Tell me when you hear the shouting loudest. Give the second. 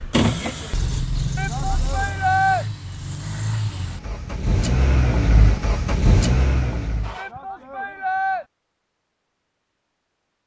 2 s.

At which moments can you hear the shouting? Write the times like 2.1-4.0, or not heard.
1.4-2.6, 7.2-8.4.